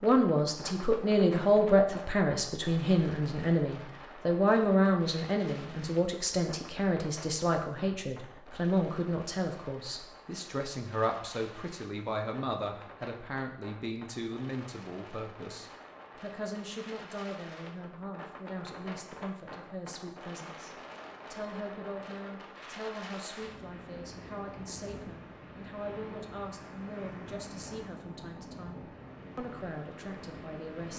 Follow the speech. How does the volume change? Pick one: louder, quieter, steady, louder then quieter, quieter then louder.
quieter.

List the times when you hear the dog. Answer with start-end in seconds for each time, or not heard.
not heard.